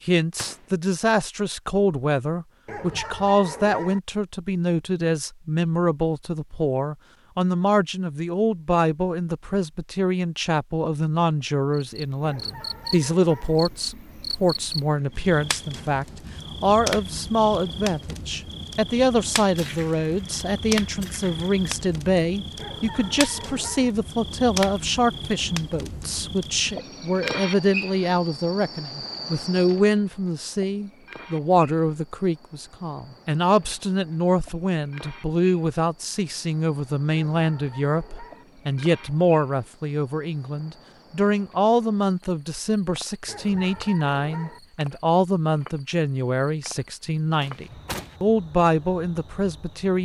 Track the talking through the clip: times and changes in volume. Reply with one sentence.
You can hear the talking from 0.1 to 50.0 s, at a steady volume.